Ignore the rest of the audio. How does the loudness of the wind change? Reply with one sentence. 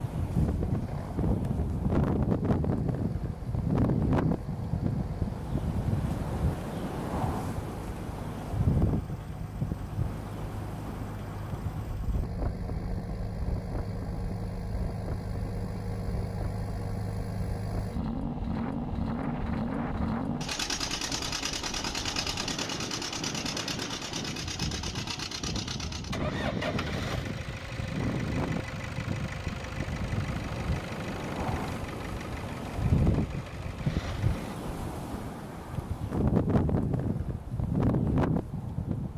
The loudness of the wind goes down, then up.